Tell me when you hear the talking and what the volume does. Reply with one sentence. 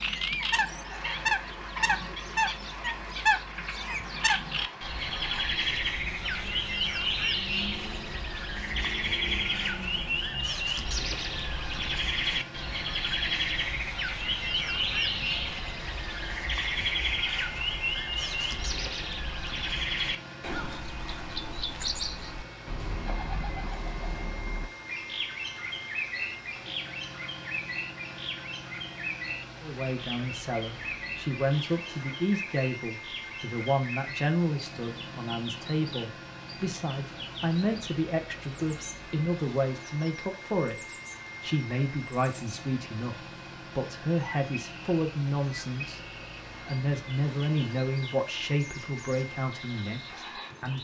You can hear the talking from 29.6 to 50.8 s, at a steady volume.